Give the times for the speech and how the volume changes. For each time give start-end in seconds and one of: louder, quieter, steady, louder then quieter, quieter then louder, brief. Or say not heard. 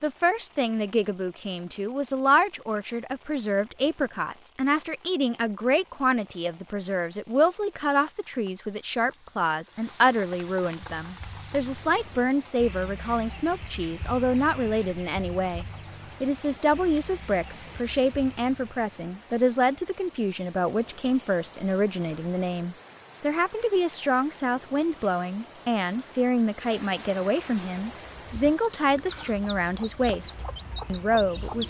0.0-31.6 steady.